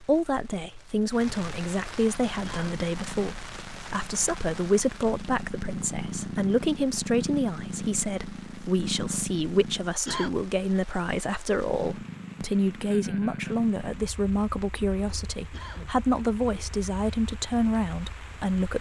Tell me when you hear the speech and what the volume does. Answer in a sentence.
You can hear the speech from 0.0 to 18.7 s, at a steady volume.